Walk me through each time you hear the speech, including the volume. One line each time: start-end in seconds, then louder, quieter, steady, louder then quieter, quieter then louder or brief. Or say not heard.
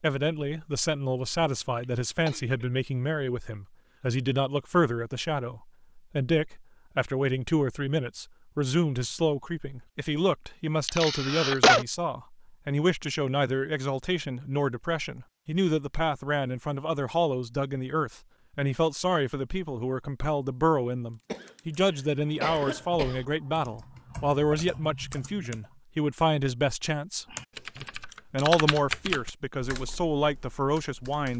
0.0-31.3 steady.